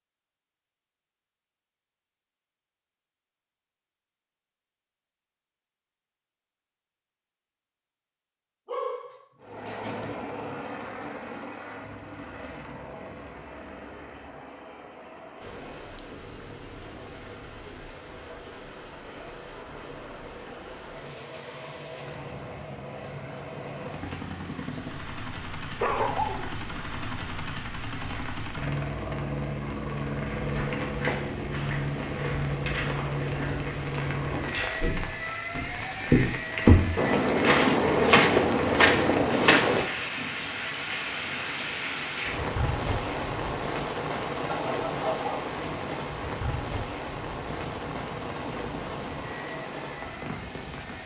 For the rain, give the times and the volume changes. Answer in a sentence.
The rain can be heard from 15.4 to 51.0 s, getting louder.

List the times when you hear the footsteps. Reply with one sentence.
You can hear the footsteps from 30.4 to 39.9 s.